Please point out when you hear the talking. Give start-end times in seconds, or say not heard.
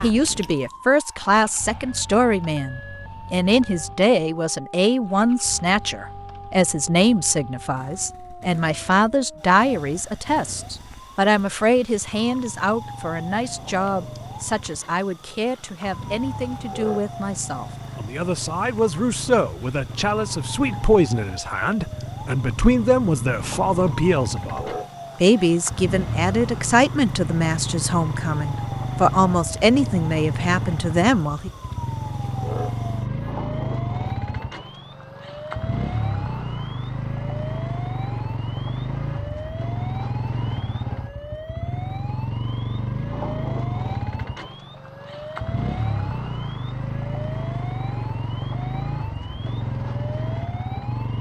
0.0-31.5.